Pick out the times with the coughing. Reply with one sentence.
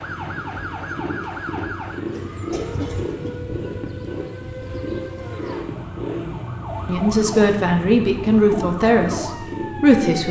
You can hear the coughing from 2.1 to 3.4 s.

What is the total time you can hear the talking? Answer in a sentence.
You can hear the talking for 3 seconds altogether.